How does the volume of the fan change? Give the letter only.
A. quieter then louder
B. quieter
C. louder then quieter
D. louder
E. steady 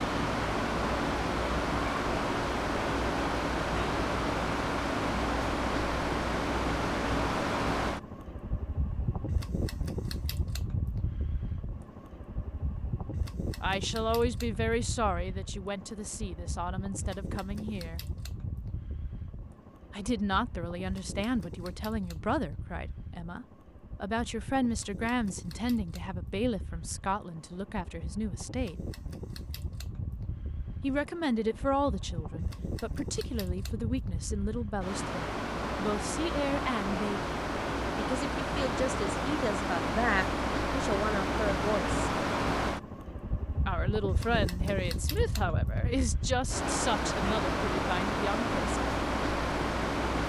A.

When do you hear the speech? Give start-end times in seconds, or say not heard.
13.6-18.0, 19.9-28.8, 30.8-42.0, 43.6-48.8.